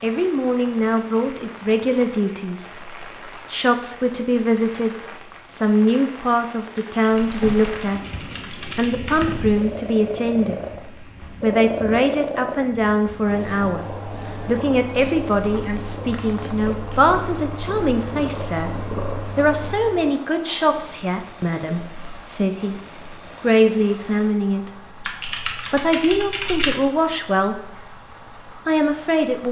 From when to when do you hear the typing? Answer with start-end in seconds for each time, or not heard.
6.8-9.5, 25.1-26.8.